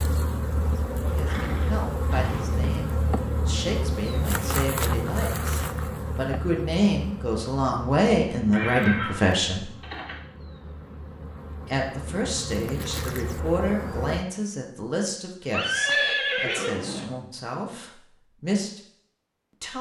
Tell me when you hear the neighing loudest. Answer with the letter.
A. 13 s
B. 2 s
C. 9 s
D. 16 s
D.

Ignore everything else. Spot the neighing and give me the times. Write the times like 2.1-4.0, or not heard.
1.2-2.6, 8.5-10.2, 15.5-17.1.